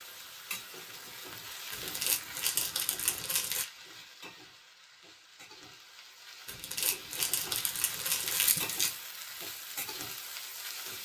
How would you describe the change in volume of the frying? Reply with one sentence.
The volume of the frying goes down, then up.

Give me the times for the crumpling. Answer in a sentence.
You can hear the crumpling from 1.7 to 3.6 s and from 6.5 to 8.9 s.